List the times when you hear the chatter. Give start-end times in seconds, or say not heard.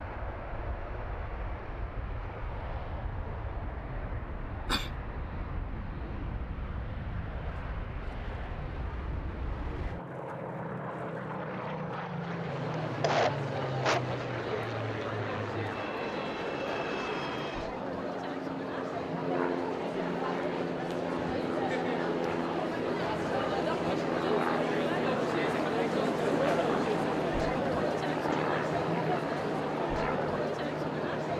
12.1-31.3.